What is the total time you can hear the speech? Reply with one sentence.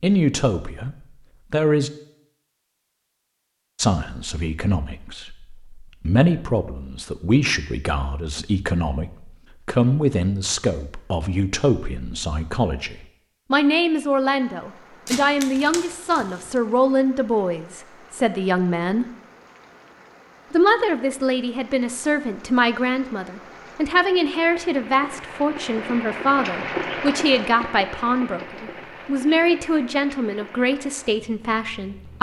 You can hear the speech for 29 seconds altogether.